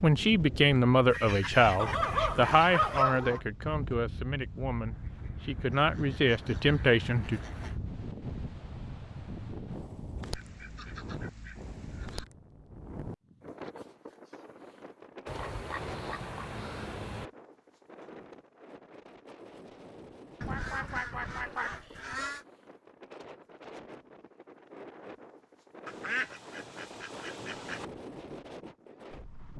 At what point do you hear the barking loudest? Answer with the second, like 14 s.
3 s.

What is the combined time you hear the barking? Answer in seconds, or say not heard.
3 s.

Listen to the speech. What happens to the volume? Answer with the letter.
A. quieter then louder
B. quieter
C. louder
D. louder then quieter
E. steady
A.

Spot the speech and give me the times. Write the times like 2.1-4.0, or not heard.
0.0-7.4.